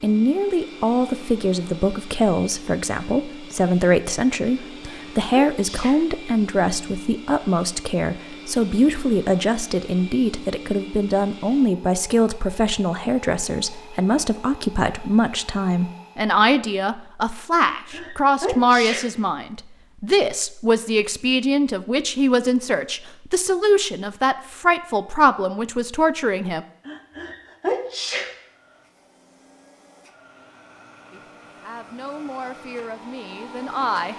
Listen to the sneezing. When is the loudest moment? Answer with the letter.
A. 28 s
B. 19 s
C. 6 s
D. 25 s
A.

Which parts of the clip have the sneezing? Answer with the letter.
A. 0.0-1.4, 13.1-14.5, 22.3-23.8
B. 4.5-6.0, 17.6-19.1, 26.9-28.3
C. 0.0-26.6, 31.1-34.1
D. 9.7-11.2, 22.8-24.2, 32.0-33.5
B.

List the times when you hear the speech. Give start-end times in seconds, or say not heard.
0.0-26.6, 31.1-34.1.